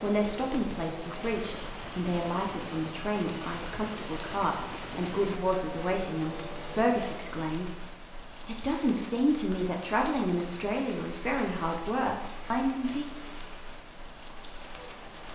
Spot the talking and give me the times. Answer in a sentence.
You can hear the talking from 0.0 to 7.7 s and from 8.4 to 13.1 s.